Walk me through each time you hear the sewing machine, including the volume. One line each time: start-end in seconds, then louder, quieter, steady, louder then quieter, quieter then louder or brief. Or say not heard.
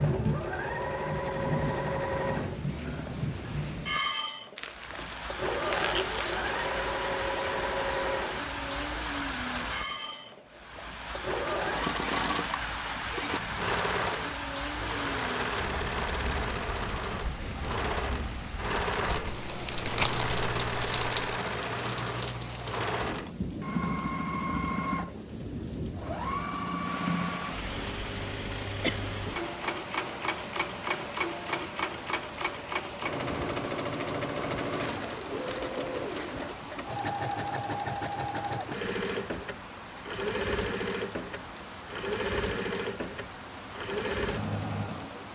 0.0-45.2 steady.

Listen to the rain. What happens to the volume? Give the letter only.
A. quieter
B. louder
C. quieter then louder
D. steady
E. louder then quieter
A.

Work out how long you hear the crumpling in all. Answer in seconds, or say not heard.
6 s.